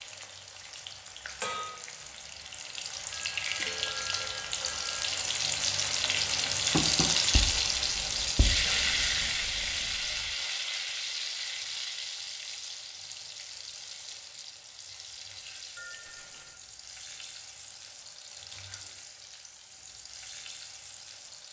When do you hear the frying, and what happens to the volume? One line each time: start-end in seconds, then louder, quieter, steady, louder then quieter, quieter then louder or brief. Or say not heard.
0.0-21.4 louder then quieter.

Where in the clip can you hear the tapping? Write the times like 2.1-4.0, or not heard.
6.7-9.3.